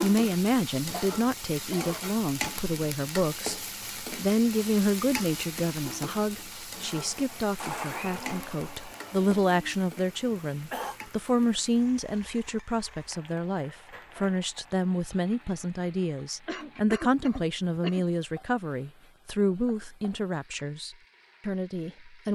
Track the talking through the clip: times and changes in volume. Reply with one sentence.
The talking can be heard from 0.0 to 22.3 s, at a steady volume.